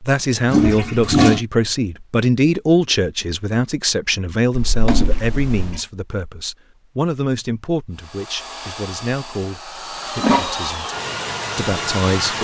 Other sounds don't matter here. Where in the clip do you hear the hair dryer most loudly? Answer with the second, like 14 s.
12 s.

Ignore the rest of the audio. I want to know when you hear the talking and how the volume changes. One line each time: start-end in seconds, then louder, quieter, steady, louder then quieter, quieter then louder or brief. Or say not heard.
0.0-10.8 quieter
11.6-12.3 brief.